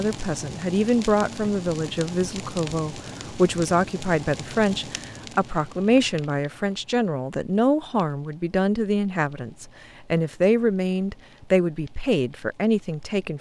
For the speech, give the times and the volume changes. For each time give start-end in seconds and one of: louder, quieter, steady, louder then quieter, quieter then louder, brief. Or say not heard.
0.0-13.3 steady.